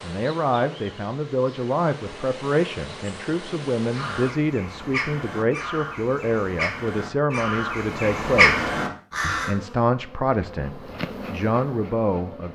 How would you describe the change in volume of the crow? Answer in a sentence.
The loudness of the crow goes up.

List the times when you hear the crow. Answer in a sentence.
The crow can be heard from 3.9 to 9.6 s.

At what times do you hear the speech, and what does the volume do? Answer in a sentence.
You can hear the speech from 0.0 to 12.4 s, at a steady volume.